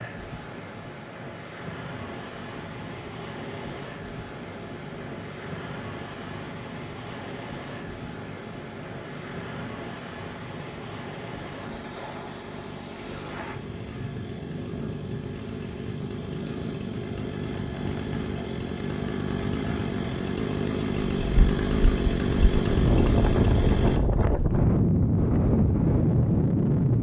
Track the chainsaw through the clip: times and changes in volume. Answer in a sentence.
You can hear the chainsaw from 1.9 to 24.0 s, getting louder.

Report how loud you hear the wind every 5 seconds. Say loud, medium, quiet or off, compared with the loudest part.
quiet, quiet, quiet, quiet, loud, loud.